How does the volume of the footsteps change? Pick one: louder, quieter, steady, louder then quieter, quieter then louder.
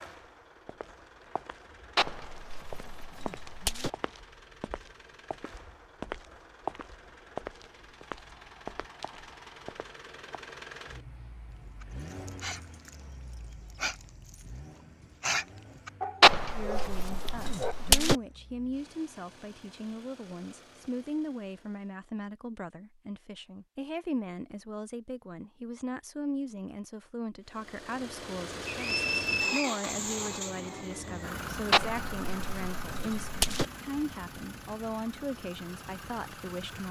louder then quieter.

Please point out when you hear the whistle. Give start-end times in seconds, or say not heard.
28.6-29.8.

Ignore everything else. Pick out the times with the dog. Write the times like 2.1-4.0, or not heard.
11.8-13.0, 13.7-14.4, 15.2-17.8.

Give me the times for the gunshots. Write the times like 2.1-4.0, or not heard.
1.9-3.9, 16.2-18.1, 31.7-33.6.